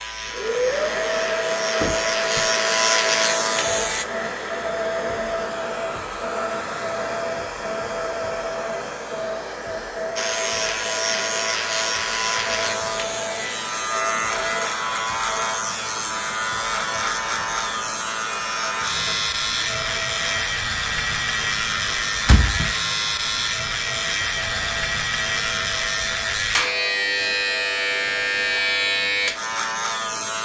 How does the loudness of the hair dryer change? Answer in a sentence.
The volume of the hair dryer goes down.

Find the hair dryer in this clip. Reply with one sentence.
You can hear the hair dryer from 0.0 to 30.4 s.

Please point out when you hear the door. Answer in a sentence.
You can hear the door from 1.8 to 2.5 s and from 22.2 to 22.8 s.